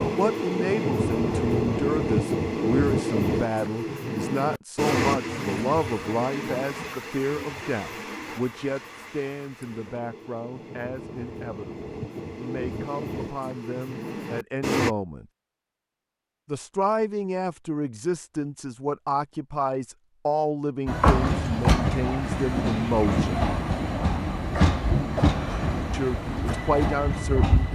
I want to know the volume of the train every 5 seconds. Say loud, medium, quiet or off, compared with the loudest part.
loud, medium, medium, off, loud, loud.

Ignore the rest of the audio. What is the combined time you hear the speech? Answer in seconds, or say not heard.
24 s.